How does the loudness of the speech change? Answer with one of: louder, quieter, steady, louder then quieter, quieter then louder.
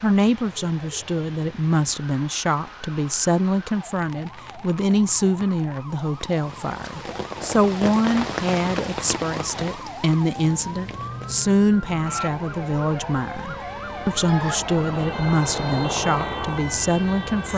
steady.